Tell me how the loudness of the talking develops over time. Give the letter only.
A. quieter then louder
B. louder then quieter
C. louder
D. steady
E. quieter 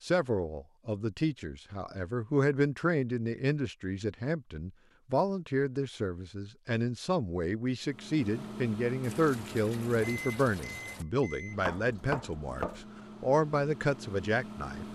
D.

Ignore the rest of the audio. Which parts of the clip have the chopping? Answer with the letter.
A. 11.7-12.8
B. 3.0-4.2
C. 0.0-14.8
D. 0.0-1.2
A.